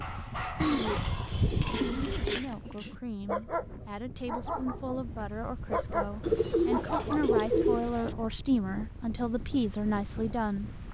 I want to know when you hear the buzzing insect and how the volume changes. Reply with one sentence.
The buzzing insect can't be heard in this clip.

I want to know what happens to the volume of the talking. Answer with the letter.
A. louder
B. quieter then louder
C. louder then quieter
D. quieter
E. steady
A.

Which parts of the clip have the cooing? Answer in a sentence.
You can hear the cooing from 0.6 to 2.5 s and from 6.2 to 8.2 s.